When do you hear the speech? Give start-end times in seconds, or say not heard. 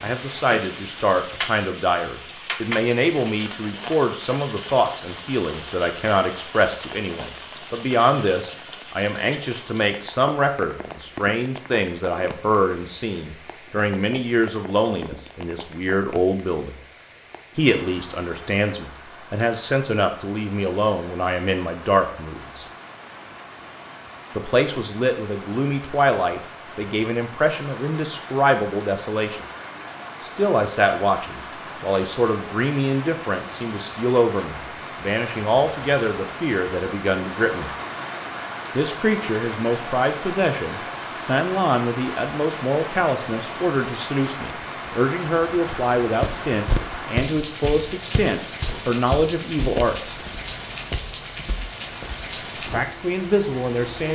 0.0-16.8, 17.6-22.6, 24.4-29.4, 30.2-37.7, 38.8-50.1, 52.7-54.0.